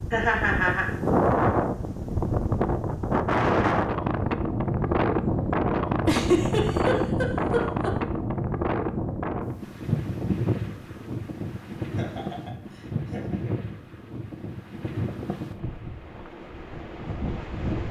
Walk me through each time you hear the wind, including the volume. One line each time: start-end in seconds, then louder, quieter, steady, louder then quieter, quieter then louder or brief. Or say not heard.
0.0-17.8 quieter.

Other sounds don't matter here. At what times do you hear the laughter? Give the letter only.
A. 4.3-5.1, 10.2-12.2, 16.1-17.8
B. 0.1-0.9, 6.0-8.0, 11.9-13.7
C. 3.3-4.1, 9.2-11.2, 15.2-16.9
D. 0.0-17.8
B.